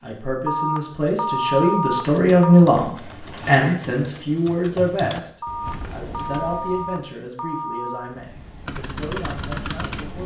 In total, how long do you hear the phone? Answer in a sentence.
You can hear the phone for 5 seconds altogether.